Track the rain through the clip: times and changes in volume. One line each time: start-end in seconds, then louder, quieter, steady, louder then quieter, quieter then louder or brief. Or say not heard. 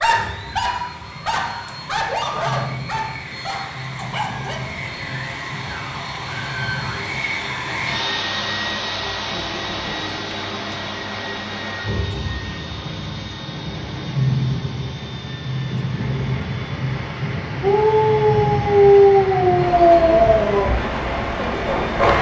0.0-22.1 louder.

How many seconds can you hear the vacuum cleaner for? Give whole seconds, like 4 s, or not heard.
22 s.